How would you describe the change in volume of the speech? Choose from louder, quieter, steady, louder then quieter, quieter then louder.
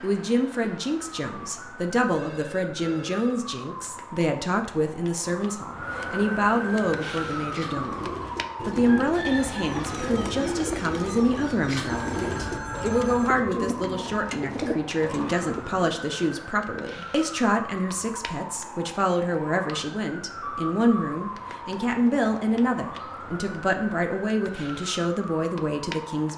steady.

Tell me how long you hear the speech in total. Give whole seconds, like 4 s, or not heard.
26 s.